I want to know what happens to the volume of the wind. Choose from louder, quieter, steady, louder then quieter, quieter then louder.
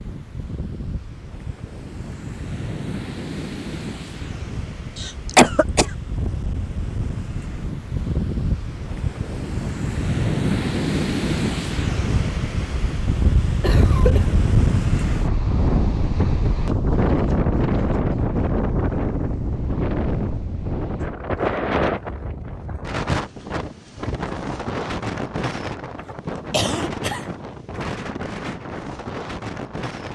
louder then quieter.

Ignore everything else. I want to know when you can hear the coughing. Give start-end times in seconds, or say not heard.
5.0-5.9, 13.6-14.4, 25.9-27.9.